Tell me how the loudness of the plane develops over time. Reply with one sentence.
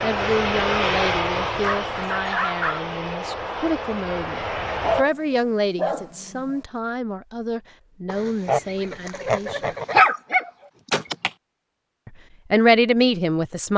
The loudness of the plane goes down.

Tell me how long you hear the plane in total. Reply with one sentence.
You can hear the plane for 5 seconds altogether.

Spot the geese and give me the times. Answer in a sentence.
The geese can be heard from 8.1 to 10.0 s.